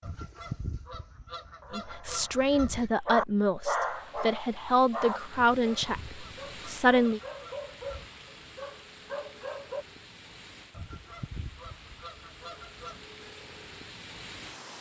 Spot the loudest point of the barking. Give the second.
4 s.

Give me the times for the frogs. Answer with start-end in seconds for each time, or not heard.
not heard.